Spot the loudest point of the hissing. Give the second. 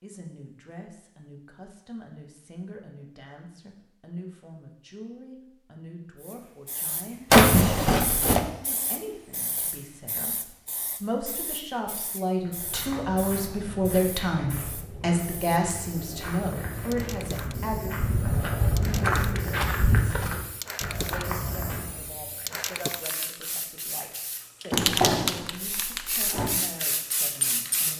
25 s.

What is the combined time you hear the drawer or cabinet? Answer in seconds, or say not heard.
3 s.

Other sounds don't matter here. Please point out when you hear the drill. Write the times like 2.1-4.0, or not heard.
not heard.